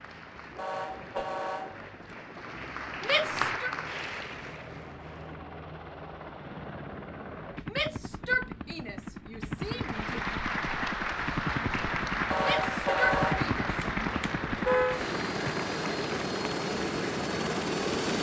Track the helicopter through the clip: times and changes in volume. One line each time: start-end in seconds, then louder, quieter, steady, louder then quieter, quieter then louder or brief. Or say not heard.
0.0-18.1 louder.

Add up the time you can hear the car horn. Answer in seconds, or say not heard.
4 s.